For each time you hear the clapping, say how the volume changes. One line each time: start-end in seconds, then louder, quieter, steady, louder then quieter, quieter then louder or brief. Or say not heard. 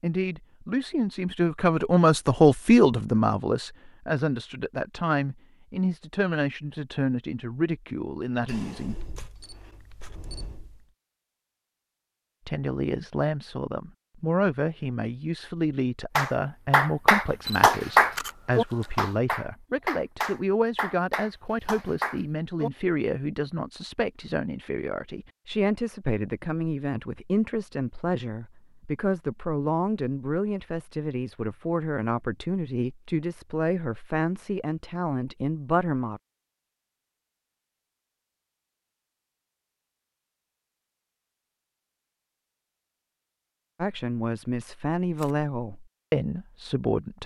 16.1-22.7 quieter.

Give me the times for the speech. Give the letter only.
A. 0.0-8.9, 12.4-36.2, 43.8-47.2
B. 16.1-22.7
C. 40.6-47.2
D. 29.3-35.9
A.